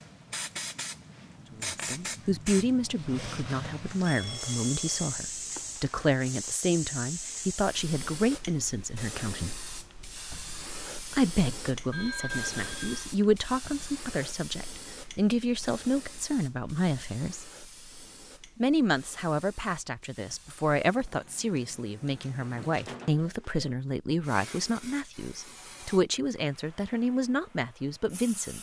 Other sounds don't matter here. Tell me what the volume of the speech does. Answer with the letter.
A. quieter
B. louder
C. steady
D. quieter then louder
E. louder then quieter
C.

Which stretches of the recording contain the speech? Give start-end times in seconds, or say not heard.
1.5-9.6, 11.1-17.5, 18.6-28.5.